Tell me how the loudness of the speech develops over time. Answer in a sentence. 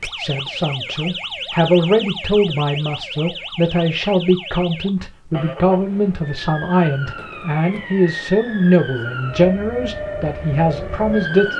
The loudness of the speech stays about the same.